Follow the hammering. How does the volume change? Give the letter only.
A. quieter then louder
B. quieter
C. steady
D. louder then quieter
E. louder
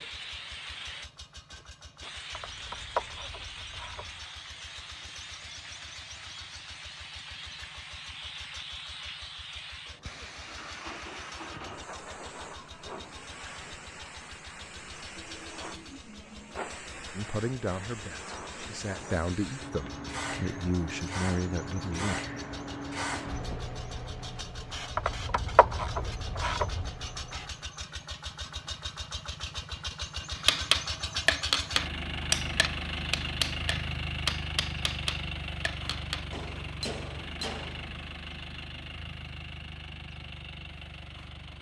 B.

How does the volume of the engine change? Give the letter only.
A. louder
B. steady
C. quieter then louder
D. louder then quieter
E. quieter
A.